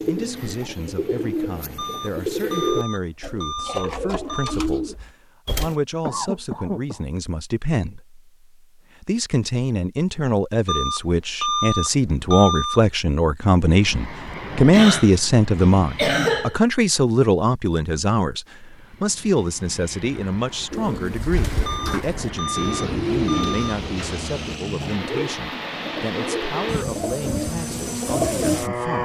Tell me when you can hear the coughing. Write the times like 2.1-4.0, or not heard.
6.0-7.0, 14.7-16.6.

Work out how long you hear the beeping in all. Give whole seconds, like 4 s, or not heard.
7 s.